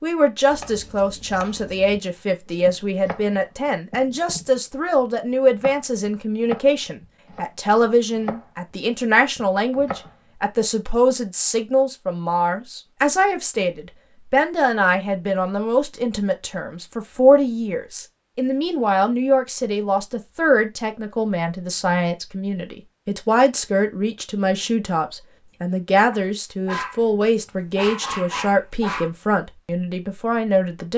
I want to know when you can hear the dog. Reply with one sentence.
The dog can be heard from 26.6 to 29.1 s.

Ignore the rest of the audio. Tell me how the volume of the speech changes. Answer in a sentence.
The volume of the speech stays about the same.